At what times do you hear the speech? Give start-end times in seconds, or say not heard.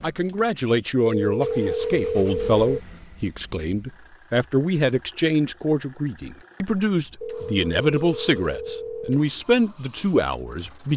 0.0-10.9.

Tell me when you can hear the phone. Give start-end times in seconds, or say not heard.
1.1-2.6, 7.2-9.2.